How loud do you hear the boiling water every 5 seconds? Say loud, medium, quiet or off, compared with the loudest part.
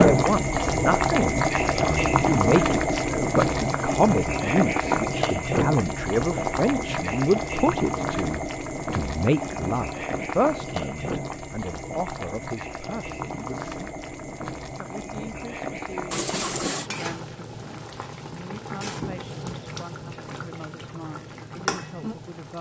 loud, medium, medium, quiet, quiet.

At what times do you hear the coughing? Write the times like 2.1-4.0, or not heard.
16.1-16.9.